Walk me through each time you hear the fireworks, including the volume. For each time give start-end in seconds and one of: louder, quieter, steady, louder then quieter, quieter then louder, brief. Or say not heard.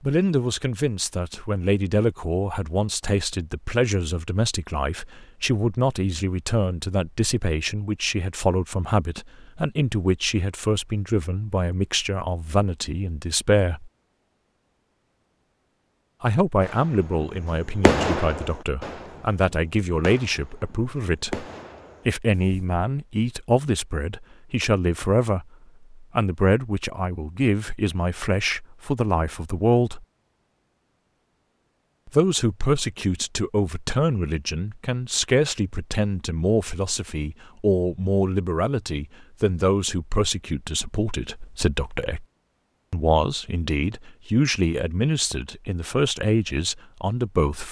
16.6-22.8 quieter then louder.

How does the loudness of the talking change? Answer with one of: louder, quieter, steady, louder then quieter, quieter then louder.
steady.